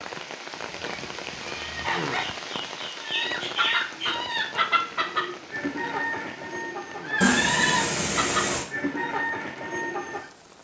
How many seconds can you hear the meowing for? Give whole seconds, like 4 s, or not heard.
3 s.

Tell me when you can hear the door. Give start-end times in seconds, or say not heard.
not heard.